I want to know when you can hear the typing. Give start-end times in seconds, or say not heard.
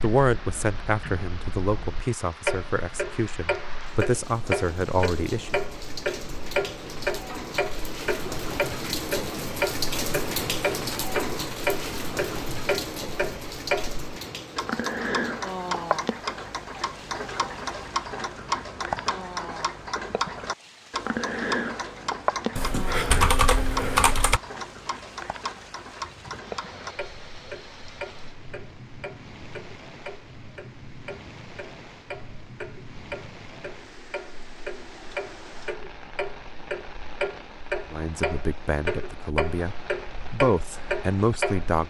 22.6-24.4.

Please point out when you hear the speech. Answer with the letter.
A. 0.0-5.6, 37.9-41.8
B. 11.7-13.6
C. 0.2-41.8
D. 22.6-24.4
A.